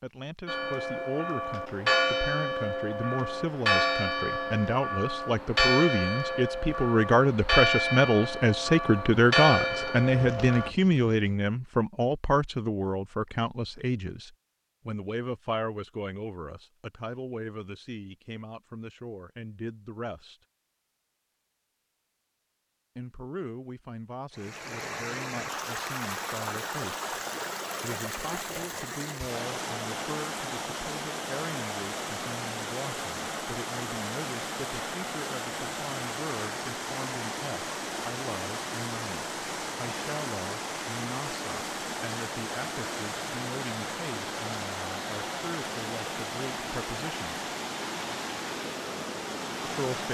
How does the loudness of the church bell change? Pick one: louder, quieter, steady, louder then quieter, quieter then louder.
steady.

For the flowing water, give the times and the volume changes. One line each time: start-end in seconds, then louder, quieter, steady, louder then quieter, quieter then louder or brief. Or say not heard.
24.3-50.0 steady.